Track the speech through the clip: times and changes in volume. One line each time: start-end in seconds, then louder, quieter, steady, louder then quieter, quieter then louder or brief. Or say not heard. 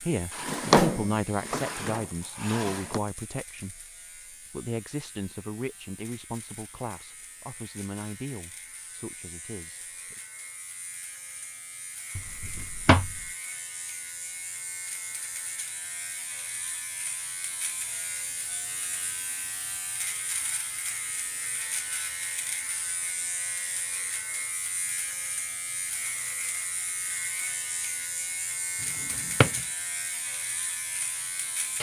0.0-10.2 quieter.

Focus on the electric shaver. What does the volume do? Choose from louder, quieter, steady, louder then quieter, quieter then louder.
louder.